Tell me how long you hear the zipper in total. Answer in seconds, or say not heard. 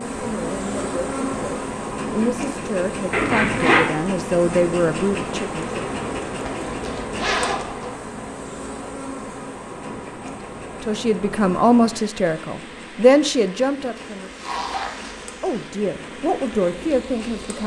4 s.